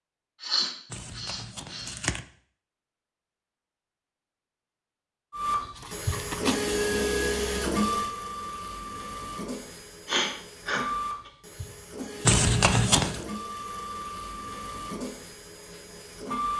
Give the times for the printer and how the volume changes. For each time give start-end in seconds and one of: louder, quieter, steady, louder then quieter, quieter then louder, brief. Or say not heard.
5.3-16.5 quieter.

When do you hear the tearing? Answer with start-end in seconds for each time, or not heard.
0.9-2.2, 5.8-6.7, 12.2-13.2.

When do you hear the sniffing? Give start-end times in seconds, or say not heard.
0.4-1.9, 10.1-10.8.